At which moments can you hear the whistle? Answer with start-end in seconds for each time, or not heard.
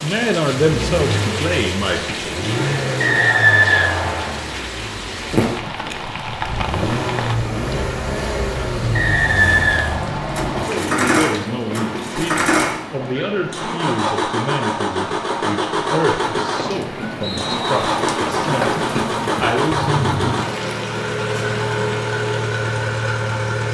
3.0-4.3, 8.9-10.7, 17.2-17.8.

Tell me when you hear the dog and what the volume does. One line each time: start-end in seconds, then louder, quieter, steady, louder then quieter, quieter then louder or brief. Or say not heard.
not heard.